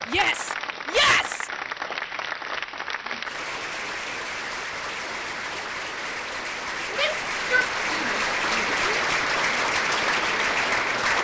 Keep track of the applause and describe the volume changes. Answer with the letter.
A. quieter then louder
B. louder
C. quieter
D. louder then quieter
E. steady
B.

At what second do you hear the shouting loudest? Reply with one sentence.
The loudest moment of the shouting is at 1 second.